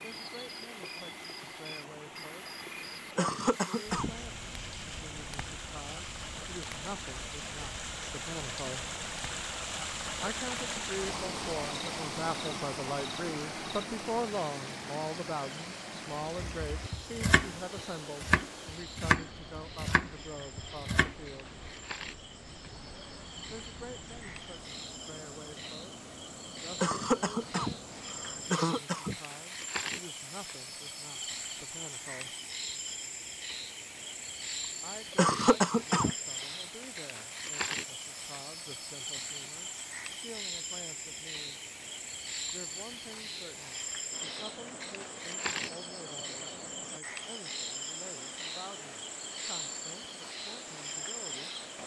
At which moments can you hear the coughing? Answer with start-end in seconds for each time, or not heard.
3.1-4.1, 26.8-29.1, 35.1-36.1.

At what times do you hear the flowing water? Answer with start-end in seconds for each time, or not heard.
0.0-51.8.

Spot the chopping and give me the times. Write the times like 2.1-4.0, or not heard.
16.4-21.1.